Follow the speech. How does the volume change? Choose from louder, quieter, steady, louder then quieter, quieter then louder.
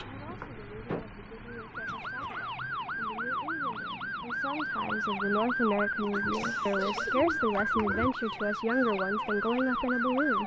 louder.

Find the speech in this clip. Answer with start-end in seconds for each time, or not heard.
0.0-10.4.